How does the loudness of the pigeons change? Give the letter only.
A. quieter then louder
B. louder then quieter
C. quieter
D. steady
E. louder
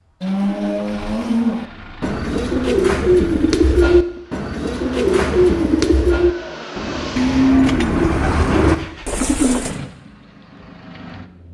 A.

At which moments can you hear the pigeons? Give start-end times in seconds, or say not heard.
2.0-9.8.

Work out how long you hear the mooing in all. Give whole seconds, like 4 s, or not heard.
3 s.